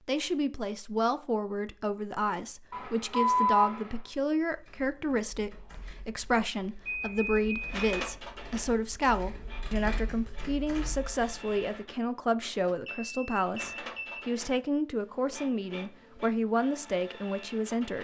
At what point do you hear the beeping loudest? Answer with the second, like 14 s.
3 s.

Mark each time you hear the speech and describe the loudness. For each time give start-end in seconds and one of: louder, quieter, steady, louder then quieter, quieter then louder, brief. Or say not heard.
0.1-18.0 steady.